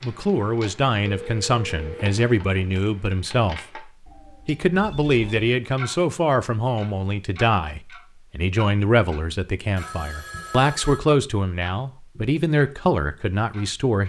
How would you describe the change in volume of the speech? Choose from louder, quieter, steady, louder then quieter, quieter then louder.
steady.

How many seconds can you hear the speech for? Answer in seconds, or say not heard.
14 s.